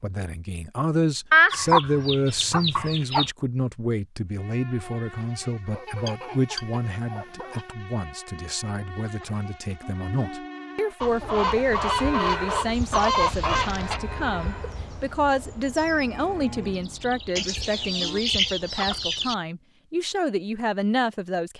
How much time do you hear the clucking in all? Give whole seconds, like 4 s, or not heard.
9 s.